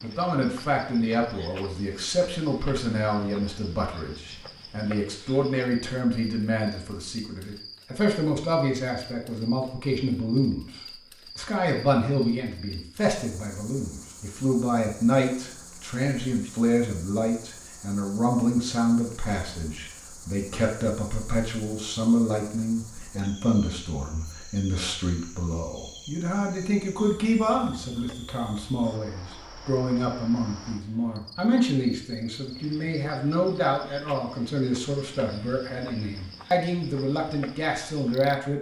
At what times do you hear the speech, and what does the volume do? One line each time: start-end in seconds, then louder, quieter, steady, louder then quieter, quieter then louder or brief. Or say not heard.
0.0-38.5 steady.